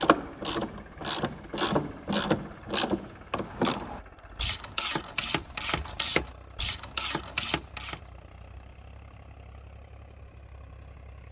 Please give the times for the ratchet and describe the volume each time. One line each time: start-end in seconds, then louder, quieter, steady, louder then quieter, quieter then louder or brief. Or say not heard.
0.0-8.0 steady.